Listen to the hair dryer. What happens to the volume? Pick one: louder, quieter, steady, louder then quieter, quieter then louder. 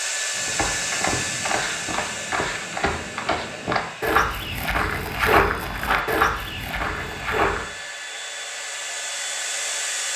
quieter then louder.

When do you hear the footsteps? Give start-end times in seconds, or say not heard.
0.3-7.7.